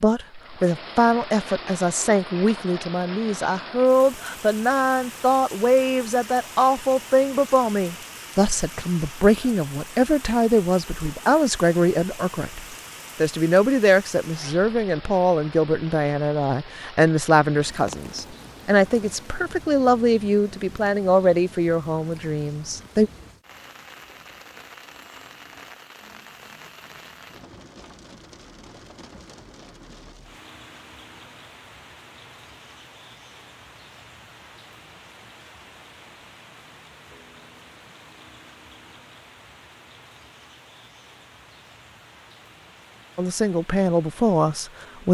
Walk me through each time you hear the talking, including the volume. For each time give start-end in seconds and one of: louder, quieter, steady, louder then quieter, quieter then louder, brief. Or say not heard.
0.0-23.1 steady
43.1-45.0 brief.